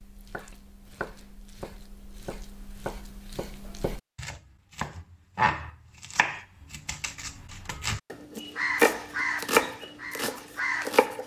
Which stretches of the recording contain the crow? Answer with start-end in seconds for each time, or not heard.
8.3-10.9.